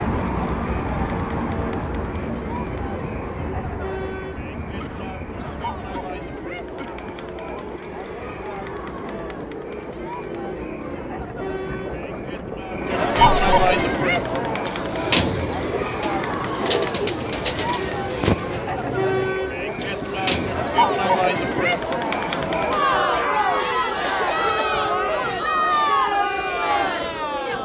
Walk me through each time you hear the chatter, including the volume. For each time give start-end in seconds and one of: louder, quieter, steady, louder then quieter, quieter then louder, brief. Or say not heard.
0.1-27.6 louder.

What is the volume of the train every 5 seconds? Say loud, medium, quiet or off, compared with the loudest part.
loud, medium, loud, medium, medium, medium.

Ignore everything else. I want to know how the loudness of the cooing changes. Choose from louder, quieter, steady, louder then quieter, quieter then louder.
steady.